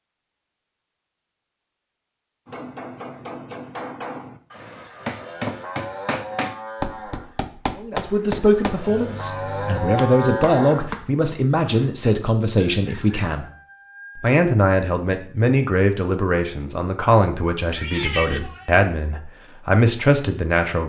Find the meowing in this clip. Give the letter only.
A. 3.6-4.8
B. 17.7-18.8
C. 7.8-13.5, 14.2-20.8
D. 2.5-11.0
B.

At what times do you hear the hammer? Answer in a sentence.
The hammer can be heard from 2.5 to 11.0 s.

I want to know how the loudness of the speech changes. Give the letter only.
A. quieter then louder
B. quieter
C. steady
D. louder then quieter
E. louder
C.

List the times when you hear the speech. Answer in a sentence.
The speech can be heard from 7.8 to 13.5 s and from 14.2 to 20.8 s.